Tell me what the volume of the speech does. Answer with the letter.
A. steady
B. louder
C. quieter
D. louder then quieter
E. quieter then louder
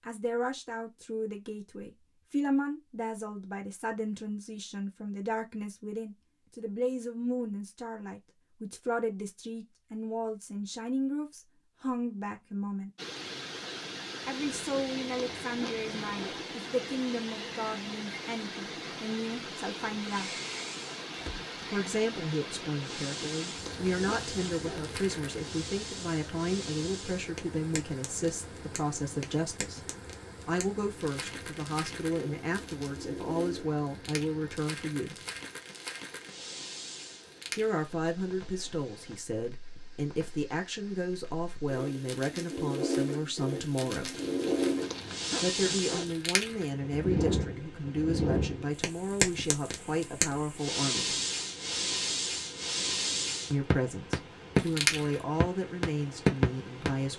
A.